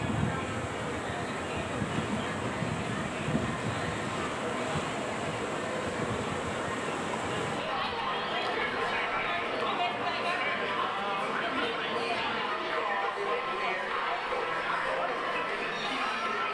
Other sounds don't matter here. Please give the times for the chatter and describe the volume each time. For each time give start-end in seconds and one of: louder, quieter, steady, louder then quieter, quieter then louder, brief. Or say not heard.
0.0-16.4 louder.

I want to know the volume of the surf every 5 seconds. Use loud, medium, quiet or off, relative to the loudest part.
loud, loud, medium, off.